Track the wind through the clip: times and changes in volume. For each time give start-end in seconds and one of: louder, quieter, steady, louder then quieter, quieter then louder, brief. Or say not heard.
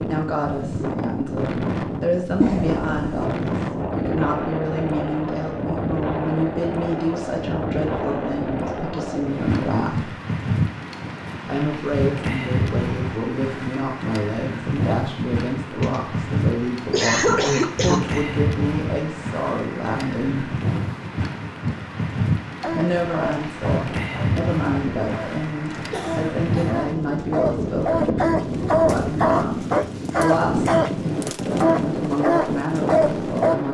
0.0-33.7 steady.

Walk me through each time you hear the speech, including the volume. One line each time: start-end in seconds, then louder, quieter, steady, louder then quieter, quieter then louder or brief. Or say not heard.
0.0-10.2 steady
11.4-20.6 steady
22.6-33.7 steady.